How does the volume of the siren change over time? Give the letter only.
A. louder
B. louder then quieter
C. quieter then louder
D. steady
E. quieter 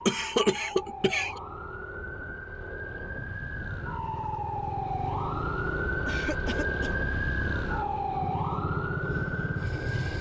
A.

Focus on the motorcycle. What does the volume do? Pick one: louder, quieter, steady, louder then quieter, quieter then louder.
louder.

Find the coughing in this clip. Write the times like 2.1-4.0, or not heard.
0.1-1.4, 6.0-6.9.